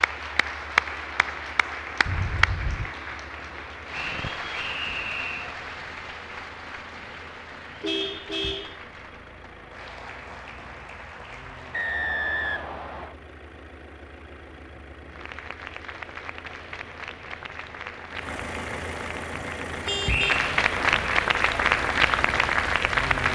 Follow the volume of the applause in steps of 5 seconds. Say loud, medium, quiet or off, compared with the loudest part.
medium, quiet, quiet, quiet, loud.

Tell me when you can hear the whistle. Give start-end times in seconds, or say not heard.
3.9-5.5, 11.7-13.2, 20.1-20.5.